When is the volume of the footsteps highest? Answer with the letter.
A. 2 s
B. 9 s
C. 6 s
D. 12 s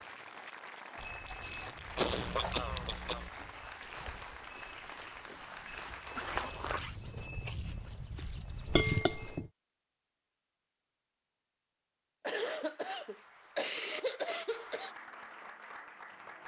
C.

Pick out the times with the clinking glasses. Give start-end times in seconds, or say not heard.
2.5-3.0, 8.7-9.4.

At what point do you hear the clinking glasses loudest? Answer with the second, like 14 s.
9 s.